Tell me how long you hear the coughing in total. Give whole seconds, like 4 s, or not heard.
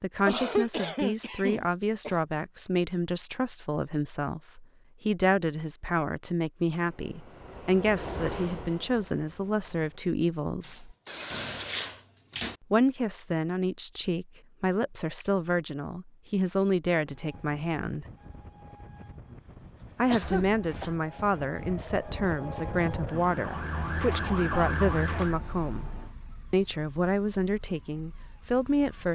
4 s.